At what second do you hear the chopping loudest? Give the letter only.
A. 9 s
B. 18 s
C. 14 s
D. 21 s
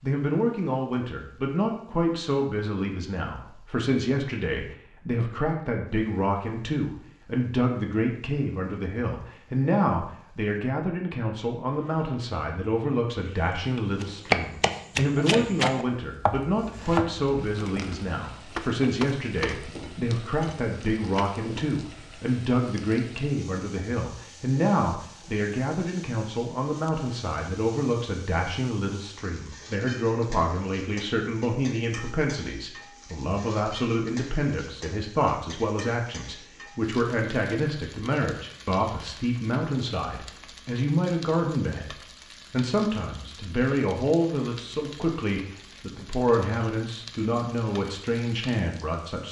C.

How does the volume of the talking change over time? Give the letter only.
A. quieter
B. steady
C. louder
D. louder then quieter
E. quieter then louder
B.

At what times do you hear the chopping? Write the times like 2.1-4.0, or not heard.
14.0-21.6.